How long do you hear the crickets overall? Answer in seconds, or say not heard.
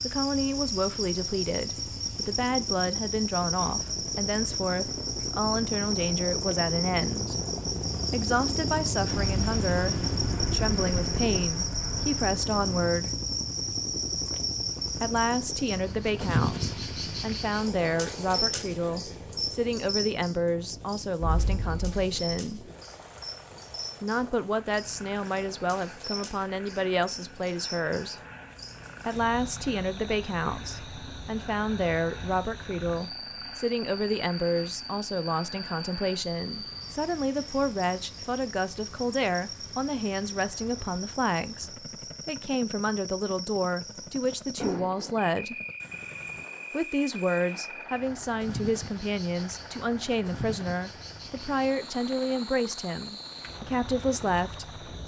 55 s.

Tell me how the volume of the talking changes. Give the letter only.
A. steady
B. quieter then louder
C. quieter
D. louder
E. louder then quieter
A.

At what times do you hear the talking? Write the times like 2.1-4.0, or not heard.
0.0-7.4, 8.1-13.1, 15.0-22.7, 24.0-28.2, 29.1-45.5, 46.7-55.0.